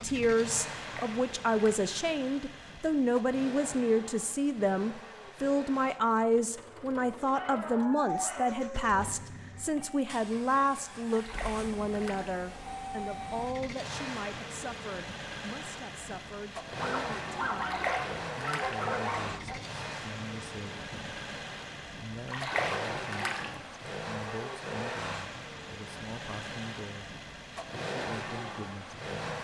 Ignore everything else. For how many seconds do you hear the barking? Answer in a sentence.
The barking can be heard for 4 seconds in total.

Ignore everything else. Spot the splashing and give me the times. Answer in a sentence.
You can hear the splashing from 0.8 to 1.9 s, from 11.1 to 12.3 s, from 17.6 to 18.8 s and from 22.2 to 23.4 s.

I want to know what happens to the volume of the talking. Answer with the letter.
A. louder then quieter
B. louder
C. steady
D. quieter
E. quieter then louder
D.